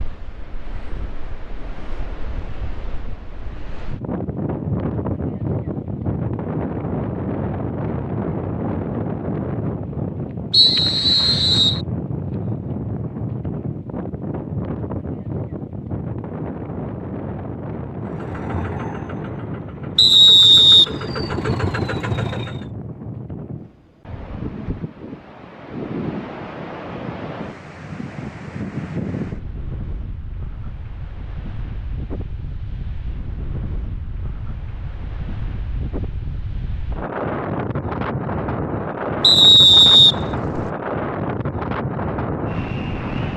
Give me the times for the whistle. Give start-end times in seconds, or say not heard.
10.5-11.8, 19.9-20.9, 39.2-40.6.